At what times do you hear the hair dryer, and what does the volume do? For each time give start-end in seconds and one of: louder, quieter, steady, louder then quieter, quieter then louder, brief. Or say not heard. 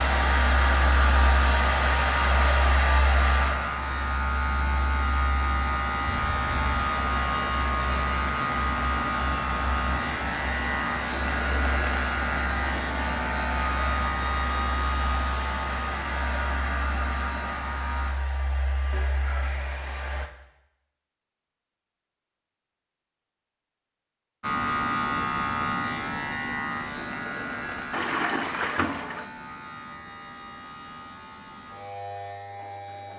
0.0-20.3 quieter.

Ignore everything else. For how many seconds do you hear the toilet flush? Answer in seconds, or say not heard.
4 s.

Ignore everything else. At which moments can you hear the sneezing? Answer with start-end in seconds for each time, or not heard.
not heard.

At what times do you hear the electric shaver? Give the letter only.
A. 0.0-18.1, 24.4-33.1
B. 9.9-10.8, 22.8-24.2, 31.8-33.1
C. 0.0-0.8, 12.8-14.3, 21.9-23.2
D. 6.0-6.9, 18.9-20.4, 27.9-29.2
A.